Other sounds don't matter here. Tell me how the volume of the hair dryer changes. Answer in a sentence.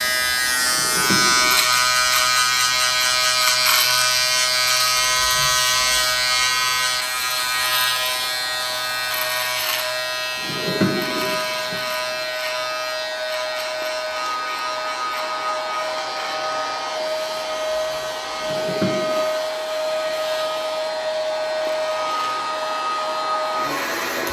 The loudness of the hair dryer goes up.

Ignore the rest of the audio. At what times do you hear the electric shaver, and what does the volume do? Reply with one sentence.
The electric shaver can be heard from 0.0 to 24.2 s, getting quieter.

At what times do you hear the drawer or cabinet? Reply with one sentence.
You can hear the drawer or cabinet from 0.7 to 1.6 s, from 10.4 to 11.8 s and from 18.4 to 19.2 s.